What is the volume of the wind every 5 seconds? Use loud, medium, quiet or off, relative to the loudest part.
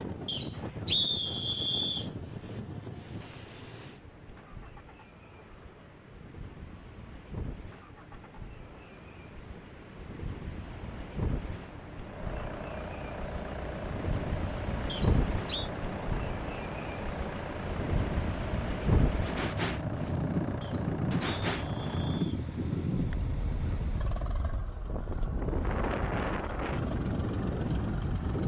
medium, quiet, medium, loud, loud, loud.